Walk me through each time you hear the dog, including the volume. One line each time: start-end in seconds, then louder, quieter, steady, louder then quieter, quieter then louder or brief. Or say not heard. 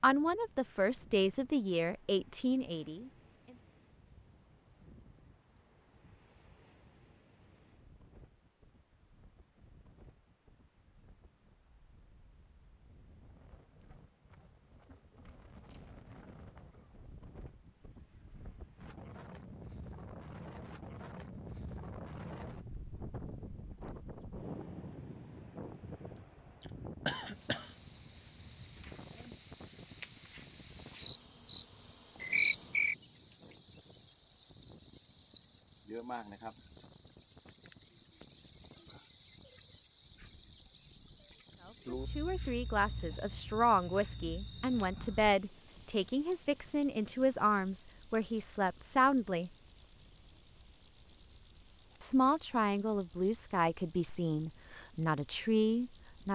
not heard.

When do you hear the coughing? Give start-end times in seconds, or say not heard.
26.1-27.8.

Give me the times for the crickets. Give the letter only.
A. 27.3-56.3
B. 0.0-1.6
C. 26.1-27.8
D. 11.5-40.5
A.